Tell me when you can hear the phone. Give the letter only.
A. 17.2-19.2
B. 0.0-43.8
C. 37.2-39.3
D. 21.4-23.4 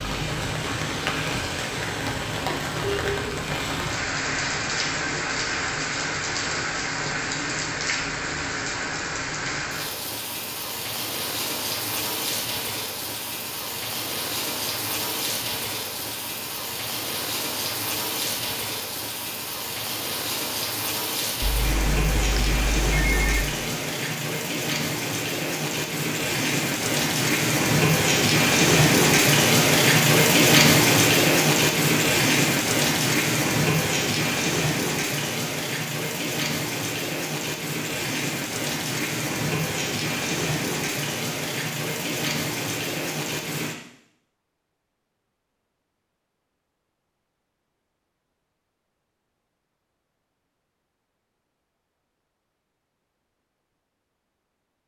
D.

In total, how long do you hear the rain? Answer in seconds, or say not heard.
44 s.